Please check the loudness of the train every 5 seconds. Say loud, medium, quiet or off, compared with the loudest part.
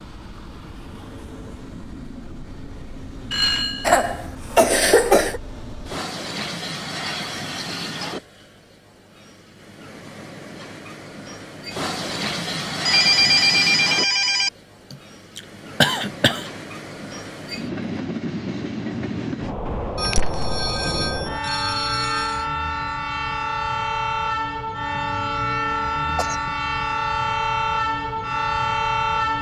quiet, medium, medium, medium, loud, loud.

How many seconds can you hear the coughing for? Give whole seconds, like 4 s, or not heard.
4 s.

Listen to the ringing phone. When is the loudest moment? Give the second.
13 s.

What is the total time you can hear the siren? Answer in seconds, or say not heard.
not heard.